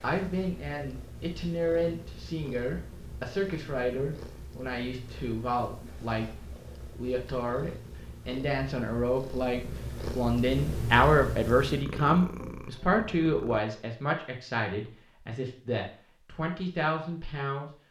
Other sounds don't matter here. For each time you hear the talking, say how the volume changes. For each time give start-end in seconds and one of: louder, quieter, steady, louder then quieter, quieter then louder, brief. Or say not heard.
0.0-17.7 louder then quieter.